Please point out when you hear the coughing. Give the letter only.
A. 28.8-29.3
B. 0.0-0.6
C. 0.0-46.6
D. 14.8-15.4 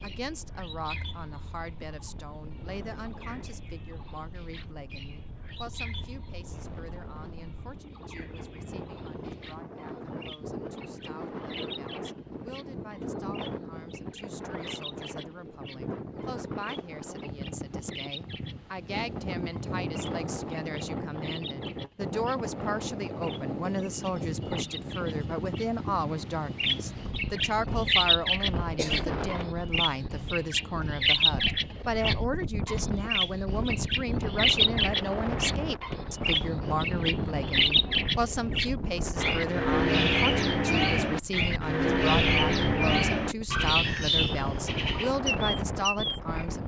A.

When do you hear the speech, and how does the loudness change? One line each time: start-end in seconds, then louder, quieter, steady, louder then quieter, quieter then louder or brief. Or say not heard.
0.0-46.6 louder.